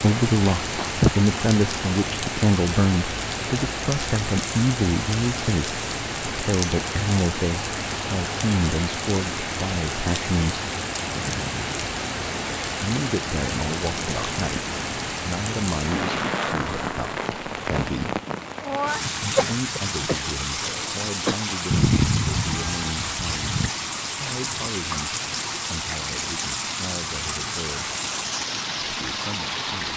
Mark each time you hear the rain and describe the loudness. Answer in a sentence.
The rain can be heard from 0.0 to 29.9 s, at a steady volume.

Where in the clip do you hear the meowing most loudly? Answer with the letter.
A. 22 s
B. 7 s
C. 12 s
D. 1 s
A.